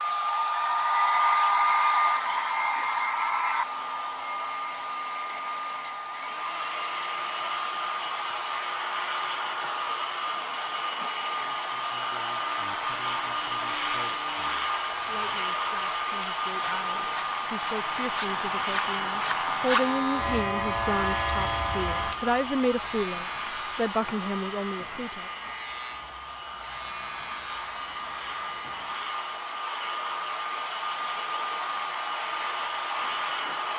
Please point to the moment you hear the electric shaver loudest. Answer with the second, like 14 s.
20 s.